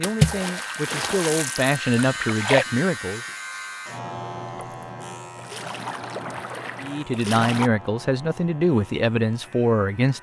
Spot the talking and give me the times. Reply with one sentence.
You can hear the talking from 0.0 to 3.2 s and from 6.8 to 10.1 s.